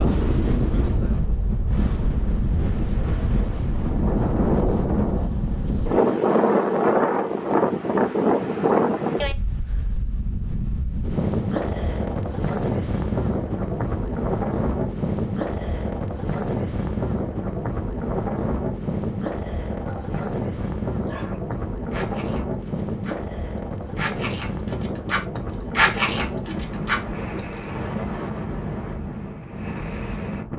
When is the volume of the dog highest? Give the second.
26 s.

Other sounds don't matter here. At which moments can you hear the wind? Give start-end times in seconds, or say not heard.
0.0-30.5.